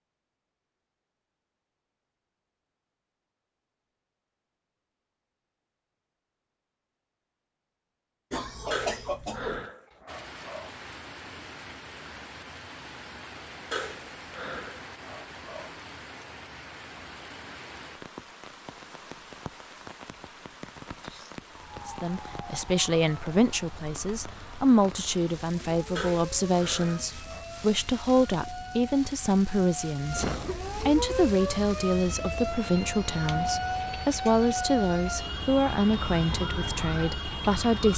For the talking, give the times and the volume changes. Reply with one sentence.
The talking can be heard from 21.9 to 37.9 s, at a steady volume.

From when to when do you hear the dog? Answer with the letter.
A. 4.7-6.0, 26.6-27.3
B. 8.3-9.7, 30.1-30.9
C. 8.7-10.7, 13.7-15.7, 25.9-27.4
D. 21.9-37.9
C.